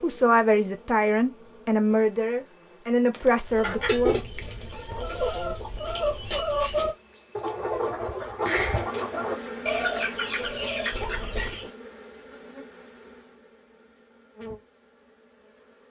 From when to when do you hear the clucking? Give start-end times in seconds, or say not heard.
3.5-11.7.